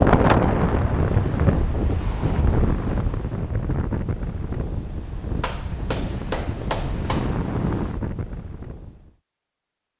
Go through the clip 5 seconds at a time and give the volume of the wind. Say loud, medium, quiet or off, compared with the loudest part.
loud, medium.